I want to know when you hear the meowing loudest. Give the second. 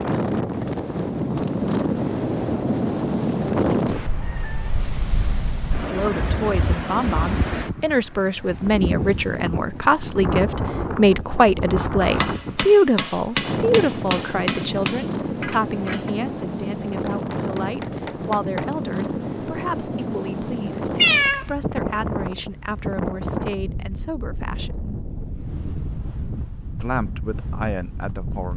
21 s.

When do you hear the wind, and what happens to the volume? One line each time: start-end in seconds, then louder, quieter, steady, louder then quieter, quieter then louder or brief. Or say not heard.
0.0-28.5 quieter.